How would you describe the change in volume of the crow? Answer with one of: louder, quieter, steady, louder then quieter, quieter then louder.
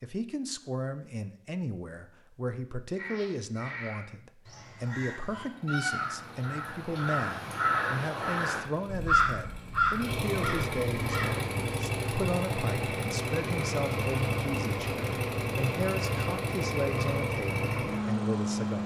louder.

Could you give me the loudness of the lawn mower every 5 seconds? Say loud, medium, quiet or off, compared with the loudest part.
off, quiet, loud, loud.